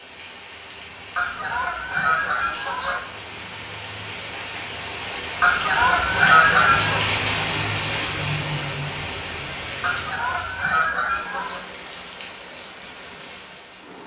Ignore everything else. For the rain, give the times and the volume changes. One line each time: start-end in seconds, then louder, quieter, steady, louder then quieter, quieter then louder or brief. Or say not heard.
0.0-14.0 louder then quieter.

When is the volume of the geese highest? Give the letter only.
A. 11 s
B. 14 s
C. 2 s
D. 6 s
D.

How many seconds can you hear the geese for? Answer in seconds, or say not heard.
5 s.